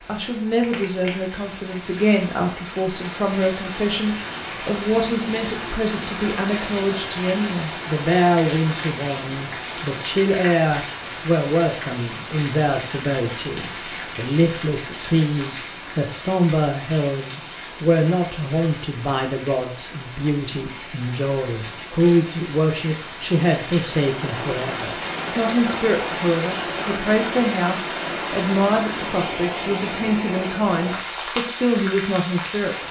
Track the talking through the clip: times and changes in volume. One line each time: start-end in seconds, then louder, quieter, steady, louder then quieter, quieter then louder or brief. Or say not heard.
0.1-32.8 steady.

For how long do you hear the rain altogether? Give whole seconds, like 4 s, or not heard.
33 s.